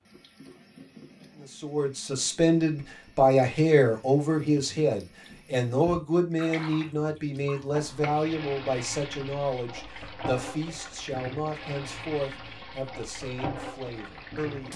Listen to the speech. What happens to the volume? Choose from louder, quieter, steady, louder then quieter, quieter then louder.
quieter.